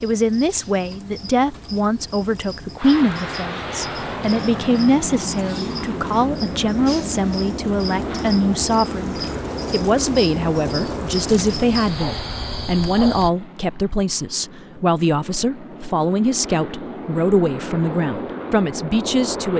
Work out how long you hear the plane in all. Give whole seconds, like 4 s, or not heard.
17 s.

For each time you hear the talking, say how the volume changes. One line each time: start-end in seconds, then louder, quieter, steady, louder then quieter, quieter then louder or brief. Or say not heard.
0.0-19.5 steady.